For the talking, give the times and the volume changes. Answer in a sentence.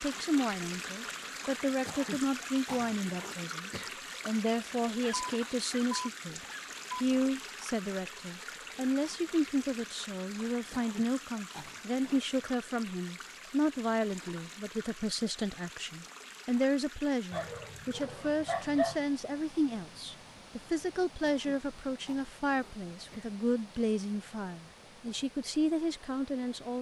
You can hear the talking from 0.0 to 26.7 s, at a steady volume.